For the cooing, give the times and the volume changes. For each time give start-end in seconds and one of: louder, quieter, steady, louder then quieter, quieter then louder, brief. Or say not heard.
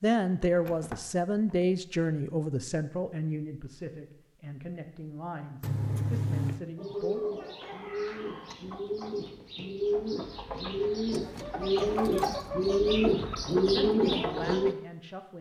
6.8-14.8 louder.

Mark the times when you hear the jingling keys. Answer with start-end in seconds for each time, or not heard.
0.2-1.6, 5.6-6.6, 11.1-12.4.